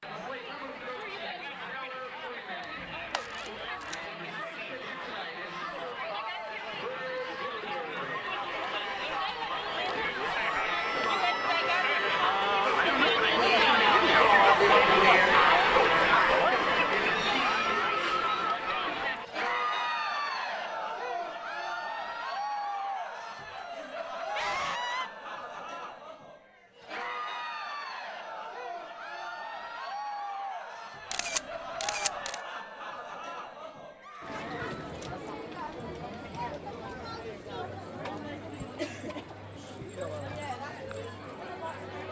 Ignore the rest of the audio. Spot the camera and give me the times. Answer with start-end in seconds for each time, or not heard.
2.6-4.0, 31.1-32.4.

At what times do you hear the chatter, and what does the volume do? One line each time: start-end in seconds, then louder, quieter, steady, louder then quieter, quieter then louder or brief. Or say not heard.
0.0-42.0 louder then quieter.